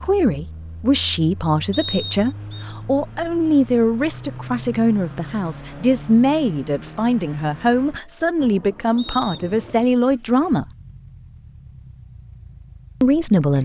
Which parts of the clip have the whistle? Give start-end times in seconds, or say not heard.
1.7-2.6, 8.9-9.5.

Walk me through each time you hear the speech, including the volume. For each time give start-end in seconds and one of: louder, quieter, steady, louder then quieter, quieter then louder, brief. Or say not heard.
0.0-10.7 steady
13.0-13.6 brief.